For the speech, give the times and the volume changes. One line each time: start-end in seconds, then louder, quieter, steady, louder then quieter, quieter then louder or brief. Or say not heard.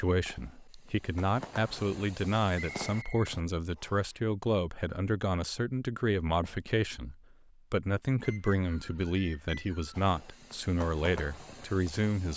0.0-12.3 steady.